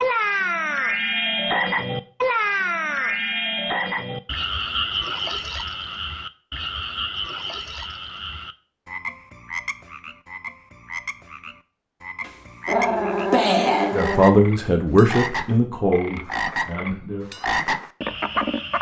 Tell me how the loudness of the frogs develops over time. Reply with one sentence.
The loudness of the frogs goes down, then up.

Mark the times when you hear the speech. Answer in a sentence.
You can hear the speech from 13.9 to 17.2 s.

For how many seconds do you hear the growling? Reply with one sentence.
The growling can be heard for 2 seconds in total.